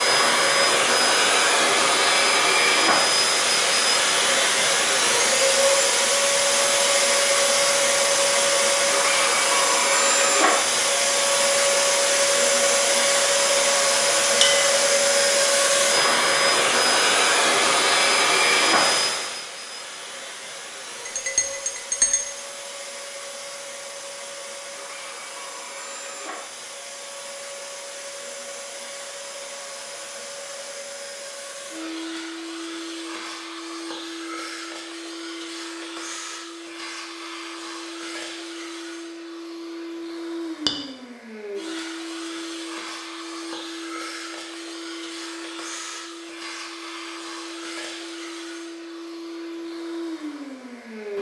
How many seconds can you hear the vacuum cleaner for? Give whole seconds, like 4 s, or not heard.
51 s.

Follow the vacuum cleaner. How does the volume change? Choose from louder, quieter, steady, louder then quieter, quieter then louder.
quieter.